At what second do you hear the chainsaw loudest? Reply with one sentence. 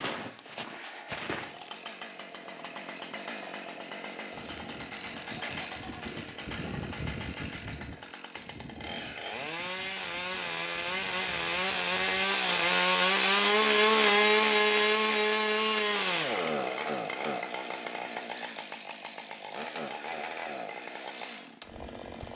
The volume of the chainsaw peaks at 14 seconds.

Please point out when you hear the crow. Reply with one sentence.
The crow can't be heard in this clip.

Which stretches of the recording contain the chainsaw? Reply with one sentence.
The chainsaw can be heard from 0.0 to 22.3 s.